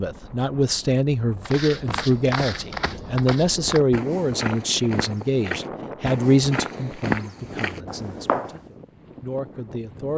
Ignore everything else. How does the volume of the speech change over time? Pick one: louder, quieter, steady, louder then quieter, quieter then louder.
quieter.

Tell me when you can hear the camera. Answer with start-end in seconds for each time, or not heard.
not heard.